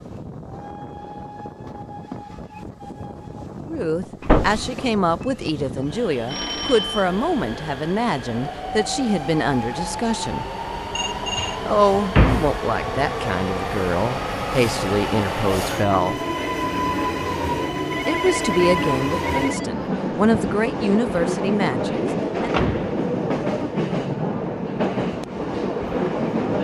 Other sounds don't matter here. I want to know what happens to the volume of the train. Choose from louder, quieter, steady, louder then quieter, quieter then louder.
louder.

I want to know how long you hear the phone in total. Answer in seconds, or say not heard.
3 s.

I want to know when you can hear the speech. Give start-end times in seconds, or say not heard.
3.6-10.4, 11.7-16.2, 18.1-22.6.